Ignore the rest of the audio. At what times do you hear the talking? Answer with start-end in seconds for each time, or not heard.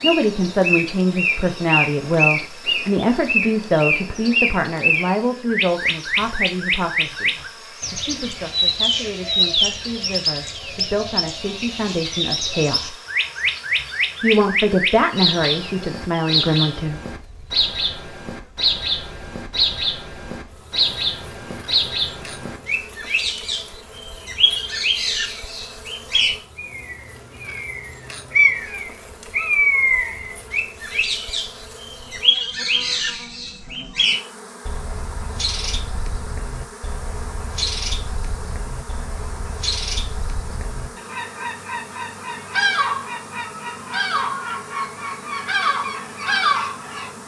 0.0-12.9, 14.2-17.0.